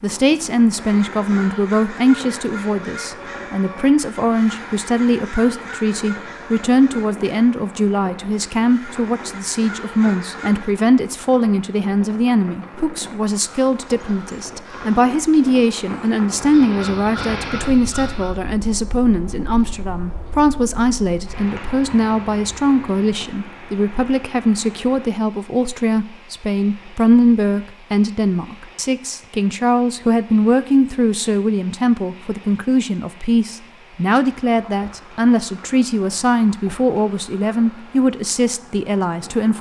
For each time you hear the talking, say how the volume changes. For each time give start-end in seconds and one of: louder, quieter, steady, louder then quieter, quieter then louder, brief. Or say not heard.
0.0-39.5 steady.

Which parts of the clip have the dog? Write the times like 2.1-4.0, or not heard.
not heard.